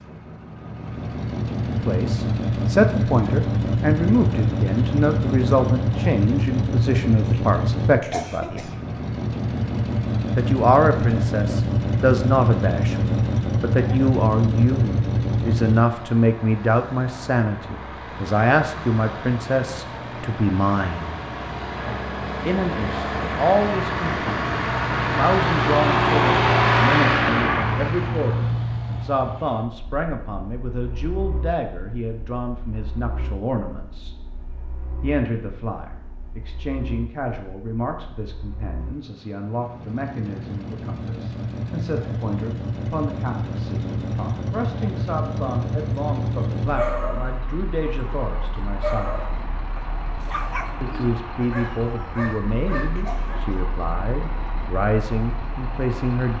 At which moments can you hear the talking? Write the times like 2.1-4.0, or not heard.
1.8-8.7, 10.3-21.1, 22.4-34.1, 35.0-49.2, 50.8-56.3.